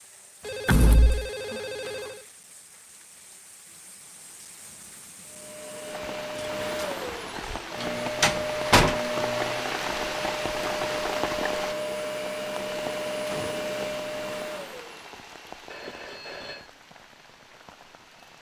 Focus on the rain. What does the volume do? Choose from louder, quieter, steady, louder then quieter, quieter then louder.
louder then quieter.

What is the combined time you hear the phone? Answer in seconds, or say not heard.
3 s.